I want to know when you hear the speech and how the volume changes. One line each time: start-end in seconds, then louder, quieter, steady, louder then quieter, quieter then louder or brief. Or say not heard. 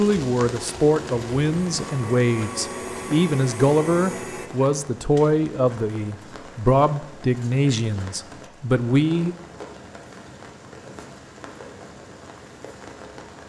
0.0-9.3 steady.